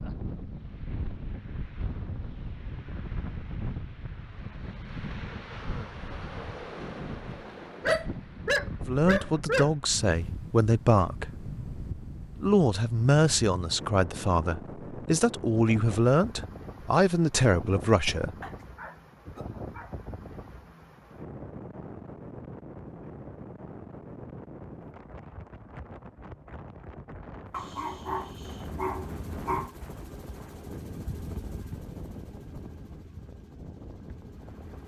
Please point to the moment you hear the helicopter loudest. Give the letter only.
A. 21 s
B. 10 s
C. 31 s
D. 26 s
C.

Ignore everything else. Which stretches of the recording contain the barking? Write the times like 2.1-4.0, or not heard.
7.8-9.7, 18.4-19.9, 27.5-29.8.